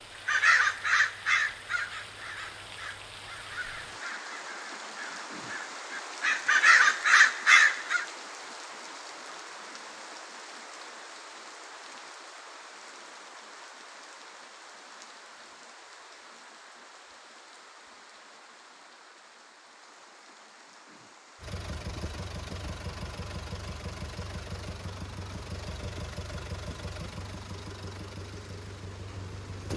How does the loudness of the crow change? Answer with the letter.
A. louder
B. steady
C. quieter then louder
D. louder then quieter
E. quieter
C.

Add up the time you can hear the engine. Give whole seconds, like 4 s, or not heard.
8 s.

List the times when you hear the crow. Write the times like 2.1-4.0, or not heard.
0.2-8.1.